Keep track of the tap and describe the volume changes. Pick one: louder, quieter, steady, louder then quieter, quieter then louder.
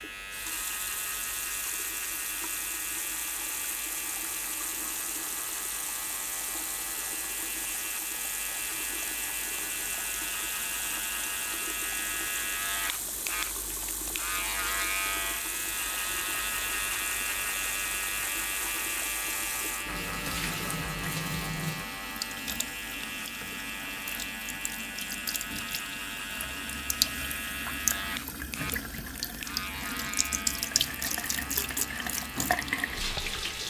louder.